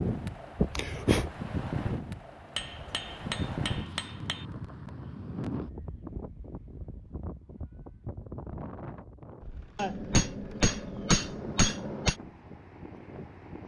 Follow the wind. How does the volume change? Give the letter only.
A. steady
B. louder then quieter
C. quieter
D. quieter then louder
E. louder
C.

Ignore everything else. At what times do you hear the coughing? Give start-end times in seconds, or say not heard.
0.6-1.4.